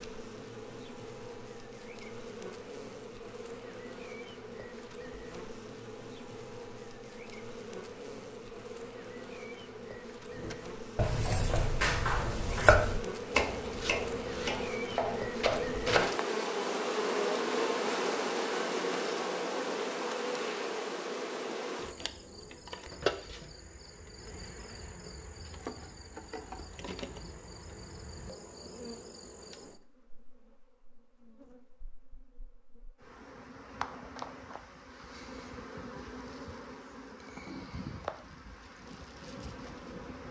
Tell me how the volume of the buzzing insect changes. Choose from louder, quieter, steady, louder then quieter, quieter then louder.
louder then quieter.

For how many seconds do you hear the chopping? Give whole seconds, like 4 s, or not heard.
6 s.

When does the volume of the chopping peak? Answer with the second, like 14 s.
13 s.